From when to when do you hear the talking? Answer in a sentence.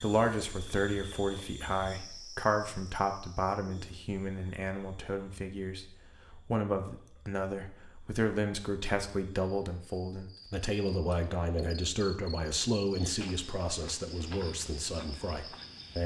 The talking can be heard from 0.0 to 16.0 s.